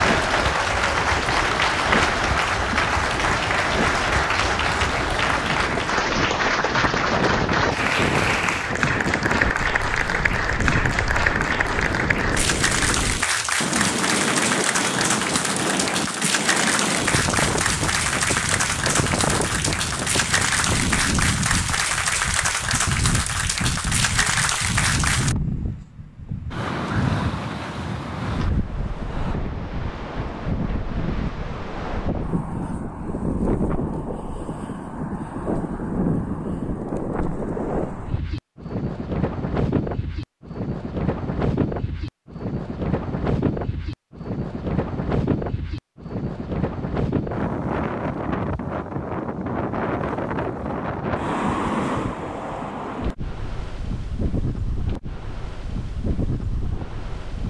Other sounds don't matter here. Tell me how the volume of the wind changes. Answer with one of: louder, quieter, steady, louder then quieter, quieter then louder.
steady.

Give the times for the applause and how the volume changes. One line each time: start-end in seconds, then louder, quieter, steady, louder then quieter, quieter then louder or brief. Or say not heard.
0.0-25.4 steady.